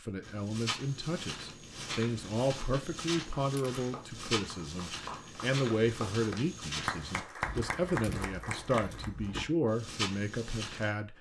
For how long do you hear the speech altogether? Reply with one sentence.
The speech can be heard for 11 seconds in total.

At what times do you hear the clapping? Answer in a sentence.
The clapping can be heard from 3.1 to 9.1 s.